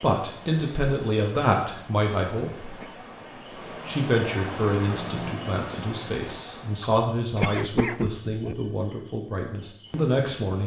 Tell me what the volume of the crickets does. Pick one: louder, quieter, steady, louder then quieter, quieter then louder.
steady.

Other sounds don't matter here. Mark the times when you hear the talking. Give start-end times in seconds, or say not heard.
0.0-2.8, 3.9-10.6.